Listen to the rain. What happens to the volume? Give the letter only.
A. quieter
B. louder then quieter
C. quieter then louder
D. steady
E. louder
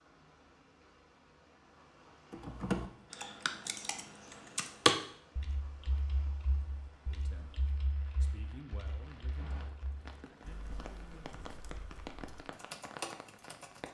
E.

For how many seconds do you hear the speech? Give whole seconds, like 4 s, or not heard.
4 s.